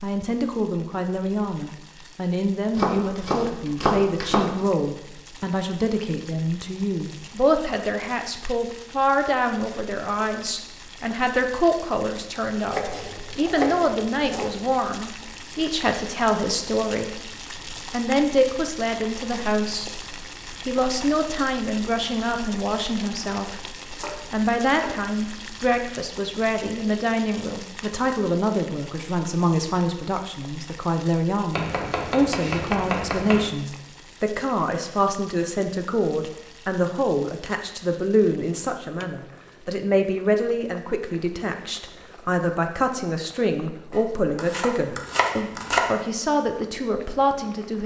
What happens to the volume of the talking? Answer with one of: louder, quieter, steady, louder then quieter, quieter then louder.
steady.